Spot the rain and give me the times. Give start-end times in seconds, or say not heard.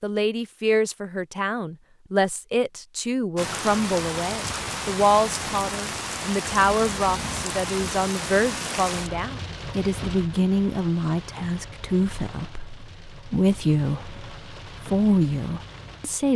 3.4-16.3.